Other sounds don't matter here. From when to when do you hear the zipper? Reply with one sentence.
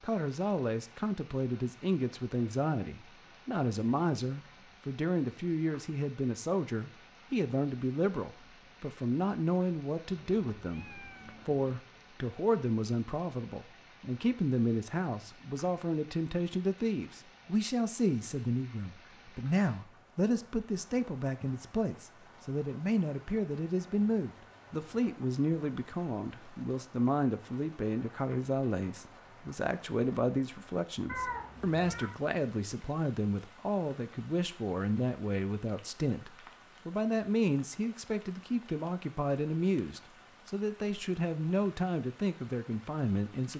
You can't hear the zipper here.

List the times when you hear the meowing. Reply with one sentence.
The meowing can be heard from 10.1 to 11.6 s and from 31.1 to 32.2 s.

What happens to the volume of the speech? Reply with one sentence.
The volume of the speech stays about the same.